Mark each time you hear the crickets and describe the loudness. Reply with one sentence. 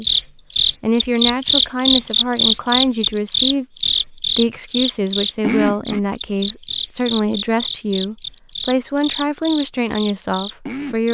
The crickets can be heard from 0.0 to 11.0 s, getting quieter.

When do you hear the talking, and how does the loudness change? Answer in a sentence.
You can hear the talking from 0.0 to 11.0 s, at a steady volume.